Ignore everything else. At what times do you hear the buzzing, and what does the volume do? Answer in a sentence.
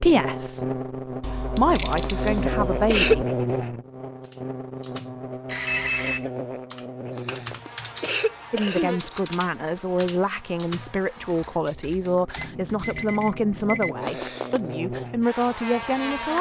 You can hear the buzzing from 0.0 to 16.3 s, getting quieter then louder.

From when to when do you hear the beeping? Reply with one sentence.
The beeping can be heard from 1.2 to 3.2 s, from 5.5 to 6.2 s and from 12.3 to 13.9 s.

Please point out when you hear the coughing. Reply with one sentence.
You can hear the coughing from 2.0 to 3.2 s, from 7.2 to 9.0 s and from 14.0 to 14.6 s.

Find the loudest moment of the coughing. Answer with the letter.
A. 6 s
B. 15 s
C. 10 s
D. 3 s
D.